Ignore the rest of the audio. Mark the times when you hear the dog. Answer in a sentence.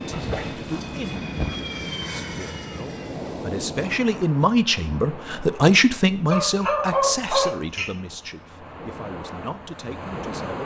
You can hear the dog from 0.1 to 1.6 s and from 6.3 to 7.9 s.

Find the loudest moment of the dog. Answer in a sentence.
The volume of the dog peaks at 7 seconds.